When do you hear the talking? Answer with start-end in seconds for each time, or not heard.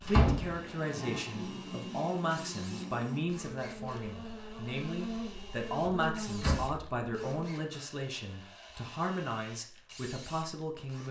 0.0-11.0.